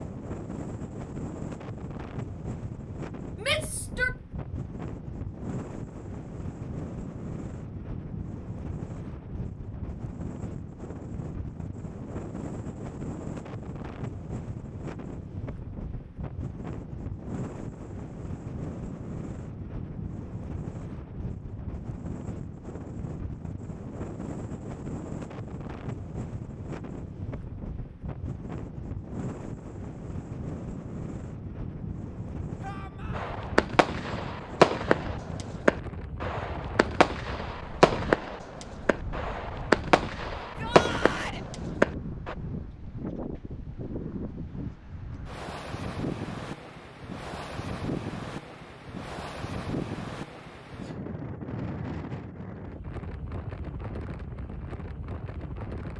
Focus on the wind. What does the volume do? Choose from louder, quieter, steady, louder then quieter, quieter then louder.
steady.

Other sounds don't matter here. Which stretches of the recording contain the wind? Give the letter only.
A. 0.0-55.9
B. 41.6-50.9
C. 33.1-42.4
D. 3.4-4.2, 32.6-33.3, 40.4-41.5
A.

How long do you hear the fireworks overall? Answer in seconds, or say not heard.
9 s.